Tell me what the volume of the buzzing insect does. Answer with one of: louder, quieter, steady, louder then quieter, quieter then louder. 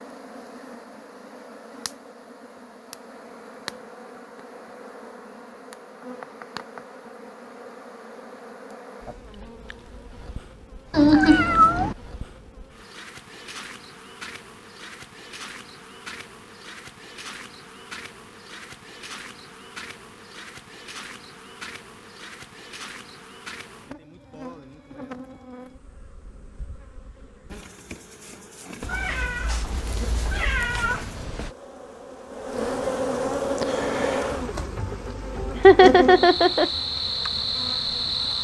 louder.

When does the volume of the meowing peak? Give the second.
11 s.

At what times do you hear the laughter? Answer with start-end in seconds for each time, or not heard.
35.6-36.6.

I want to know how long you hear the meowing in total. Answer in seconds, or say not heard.
4 s.